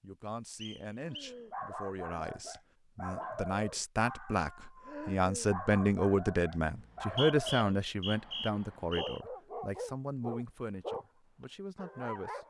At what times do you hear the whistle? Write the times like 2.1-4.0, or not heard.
0.6-1.4, 6.8-9.2.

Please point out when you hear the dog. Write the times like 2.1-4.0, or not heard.
1.0-12.4.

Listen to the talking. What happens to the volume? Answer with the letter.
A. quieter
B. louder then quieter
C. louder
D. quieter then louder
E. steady
B.